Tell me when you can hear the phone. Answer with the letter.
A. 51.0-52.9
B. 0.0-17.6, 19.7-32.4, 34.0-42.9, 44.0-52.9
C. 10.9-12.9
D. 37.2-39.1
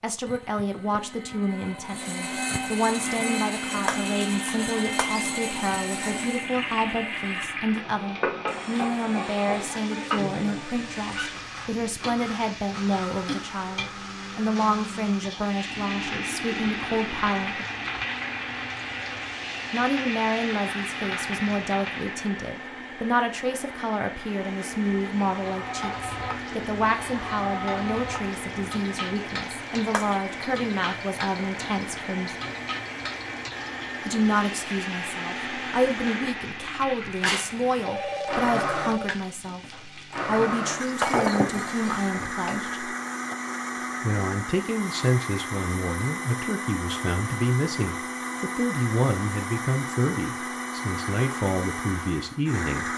D.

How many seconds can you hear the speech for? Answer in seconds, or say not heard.
48 s.